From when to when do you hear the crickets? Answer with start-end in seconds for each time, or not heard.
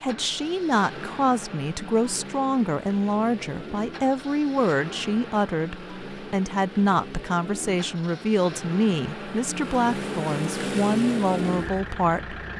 not heard.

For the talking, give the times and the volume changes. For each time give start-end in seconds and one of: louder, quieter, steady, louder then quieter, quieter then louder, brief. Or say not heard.
0.0-12.4 steady.